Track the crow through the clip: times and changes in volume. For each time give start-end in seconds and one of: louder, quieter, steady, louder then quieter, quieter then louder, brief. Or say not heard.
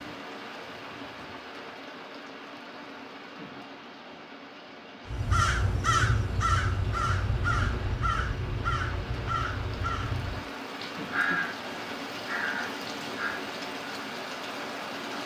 5.0-13.4 quieter.